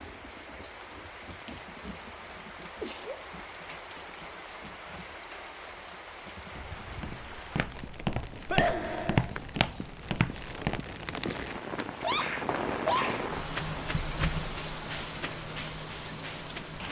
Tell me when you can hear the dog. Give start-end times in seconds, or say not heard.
not heard.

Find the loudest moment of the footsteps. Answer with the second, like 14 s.
9 s.